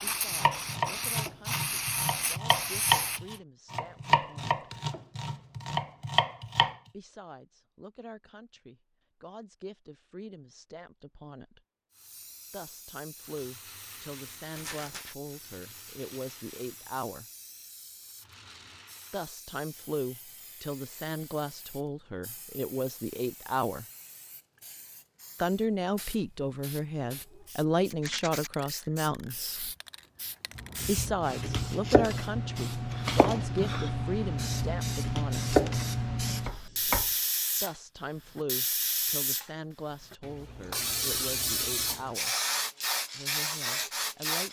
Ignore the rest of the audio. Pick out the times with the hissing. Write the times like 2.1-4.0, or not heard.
0.0-3.4, 11.9-44.4.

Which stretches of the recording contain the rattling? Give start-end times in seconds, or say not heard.
14.5-15.2, 27.9-28.5.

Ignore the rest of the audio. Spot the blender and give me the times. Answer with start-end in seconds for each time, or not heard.
not heard.